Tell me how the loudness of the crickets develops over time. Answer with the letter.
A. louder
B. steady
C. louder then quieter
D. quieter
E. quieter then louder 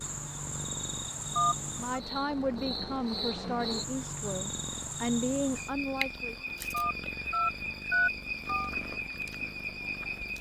B.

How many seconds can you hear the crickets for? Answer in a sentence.
You can hear the crickets for 10 seconds altogether.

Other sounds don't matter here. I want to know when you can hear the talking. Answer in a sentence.
You can hear the talking from 1.8 to 6.3 s.